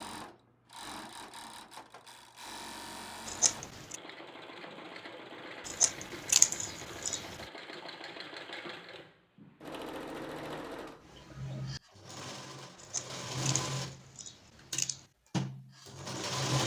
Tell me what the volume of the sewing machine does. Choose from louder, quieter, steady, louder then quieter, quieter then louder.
louder.